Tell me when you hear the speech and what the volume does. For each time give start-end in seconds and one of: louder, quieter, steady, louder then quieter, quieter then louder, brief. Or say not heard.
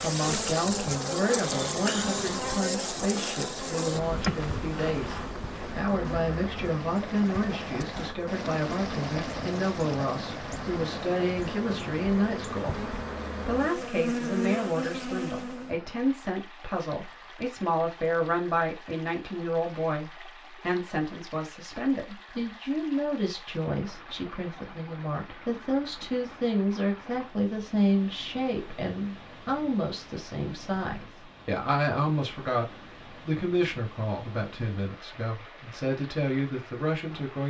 0.0-37.4 steady.